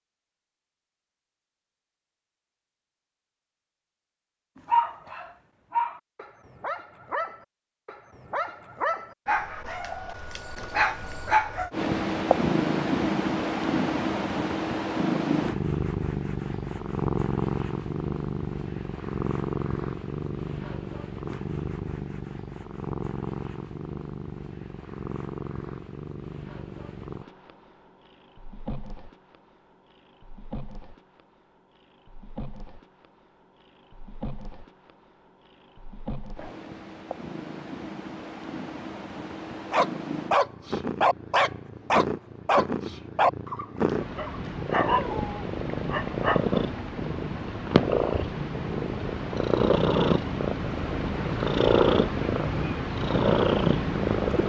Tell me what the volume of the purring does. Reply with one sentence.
The volume of the purring goes down, then up.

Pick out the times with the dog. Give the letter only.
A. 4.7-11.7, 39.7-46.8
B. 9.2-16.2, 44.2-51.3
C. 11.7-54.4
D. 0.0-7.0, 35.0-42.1
A.